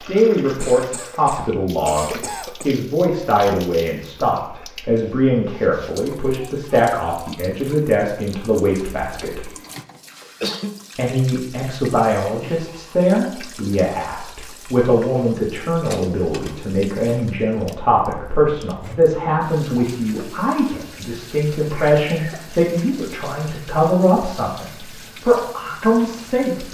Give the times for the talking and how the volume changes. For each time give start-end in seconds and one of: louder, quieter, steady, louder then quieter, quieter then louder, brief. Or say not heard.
0.0-9.5 steady
10.9-26.6 steady.